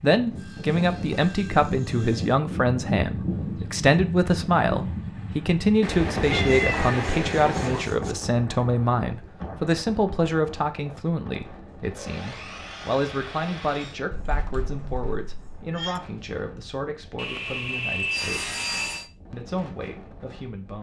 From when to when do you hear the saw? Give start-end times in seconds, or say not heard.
0.3-2.4, 6.3-8.2, 11.8-14.0, 17.1-19.1.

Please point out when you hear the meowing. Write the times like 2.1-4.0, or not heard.
5.8-7.8, 14.1-16.0.